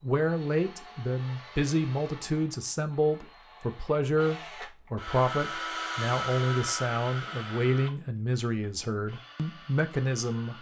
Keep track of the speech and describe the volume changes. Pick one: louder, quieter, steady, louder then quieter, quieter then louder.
steady.